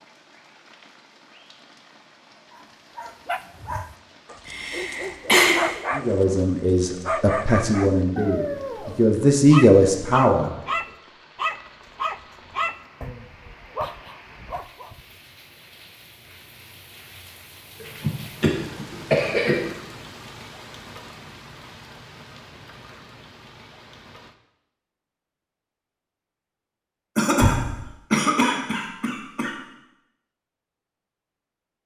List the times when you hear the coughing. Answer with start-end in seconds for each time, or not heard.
4.5-5.5, 17.8-19.6, 27.1-29.6.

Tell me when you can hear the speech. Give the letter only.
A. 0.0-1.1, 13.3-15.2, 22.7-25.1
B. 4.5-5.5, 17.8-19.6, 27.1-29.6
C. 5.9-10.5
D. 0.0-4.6
C.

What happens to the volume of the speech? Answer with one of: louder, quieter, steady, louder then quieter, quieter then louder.
louder.